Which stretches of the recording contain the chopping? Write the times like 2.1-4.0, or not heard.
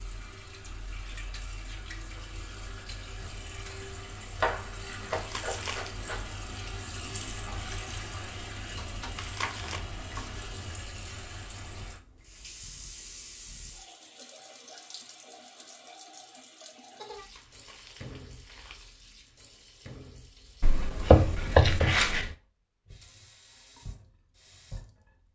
4.3-6.3, 8.8-10.7, 20.6-22.3.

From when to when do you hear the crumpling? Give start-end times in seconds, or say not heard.
5.1-6.0, 9.2-9.8, 17.1-18.9.